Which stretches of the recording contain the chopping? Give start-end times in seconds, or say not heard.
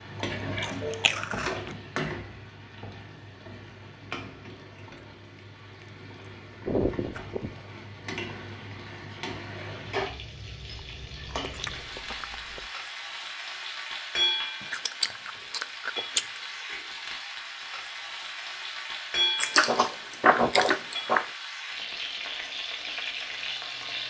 not heard.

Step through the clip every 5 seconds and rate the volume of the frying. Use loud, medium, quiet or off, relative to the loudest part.
loud, medium, loud, loud, loud.